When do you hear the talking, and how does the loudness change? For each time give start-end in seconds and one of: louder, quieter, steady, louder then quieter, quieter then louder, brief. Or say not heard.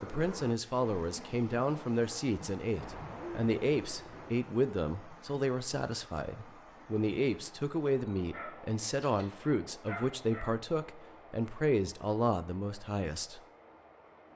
0.0-13.4 steady.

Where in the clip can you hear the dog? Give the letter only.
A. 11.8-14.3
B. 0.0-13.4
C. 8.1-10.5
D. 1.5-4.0
C.